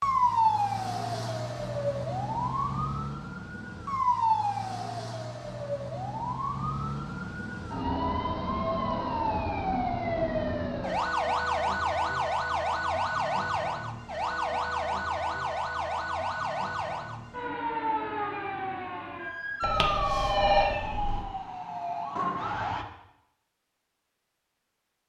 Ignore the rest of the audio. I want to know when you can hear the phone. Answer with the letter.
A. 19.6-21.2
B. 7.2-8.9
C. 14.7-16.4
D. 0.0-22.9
A.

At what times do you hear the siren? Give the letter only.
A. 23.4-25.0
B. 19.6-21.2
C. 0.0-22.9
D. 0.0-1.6
C.